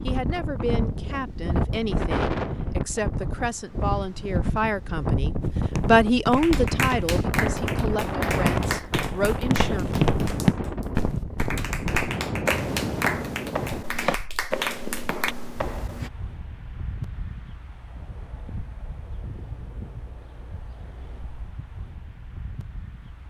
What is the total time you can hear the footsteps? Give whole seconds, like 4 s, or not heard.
11 s.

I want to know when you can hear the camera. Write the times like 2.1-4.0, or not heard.
not heard.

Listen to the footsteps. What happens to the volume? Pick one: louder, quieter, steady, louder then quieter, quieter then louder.
louder then quieter.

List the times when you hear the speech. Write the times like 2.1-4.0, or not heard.
0.0-9.8.